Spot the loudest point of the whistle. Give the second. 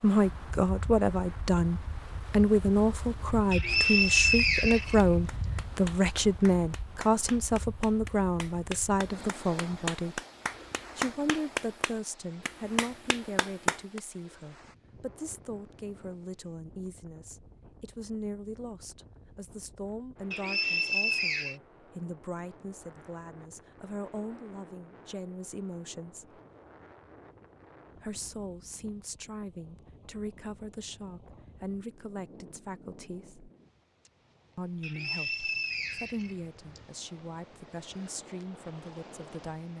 4 s.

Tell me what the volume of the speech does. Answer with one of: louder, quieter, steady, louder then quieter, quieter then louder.
quieter.